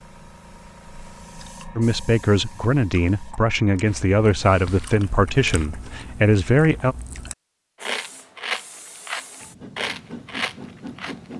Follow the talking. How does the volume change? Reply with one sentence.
The loudness of the talking stays about the same.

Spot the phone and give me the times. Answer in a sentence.
You can't hear the phone here.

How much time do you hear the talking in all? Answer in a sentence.
You can hear the talking for 5 seconds altogether.